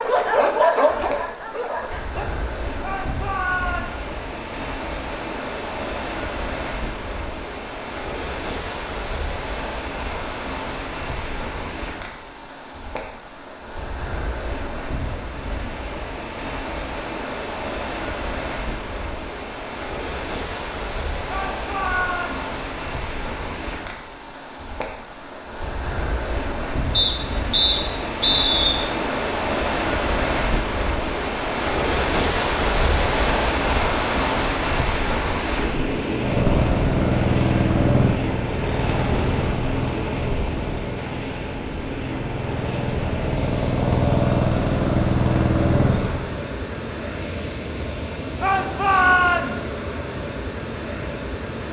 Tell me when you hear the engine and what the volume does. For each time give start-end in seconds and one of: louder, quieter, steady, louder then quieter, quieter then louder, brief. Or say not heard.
36.1-46.3 quieter then louder.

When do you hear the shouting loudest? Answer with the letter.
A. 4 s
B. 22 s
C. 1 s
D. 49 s
D.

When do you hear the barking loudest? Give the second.
1 s.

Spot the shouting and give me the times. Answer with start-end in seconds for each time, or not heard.
2.8-4.0, 21.2-22.4, 48.4-49.8.